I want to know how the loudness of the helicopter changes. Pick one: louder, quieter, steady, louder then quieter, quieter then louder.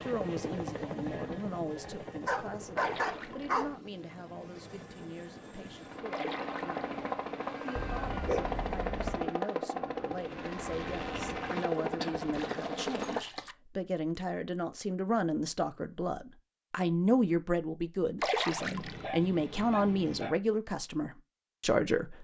quieter then louder.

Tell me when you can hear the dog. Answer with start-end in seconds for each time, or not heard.
2.2-3.8, 7.8-9.3, 18.6-20.4.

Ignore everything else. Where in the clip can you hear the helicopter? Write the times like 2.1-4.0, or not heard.
0.0-13.2.